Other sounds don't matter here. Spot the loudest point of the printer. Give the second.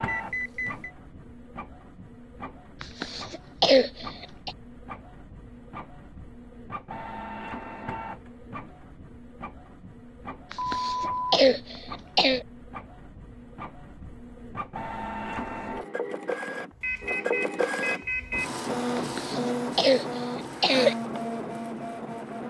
19 s.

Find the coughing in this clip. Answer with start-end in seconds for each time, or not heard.
2.8-4.5, 10.5-12.4, 18.9-20.9.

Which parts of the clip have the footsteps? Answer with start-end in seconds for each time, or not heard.
not heard.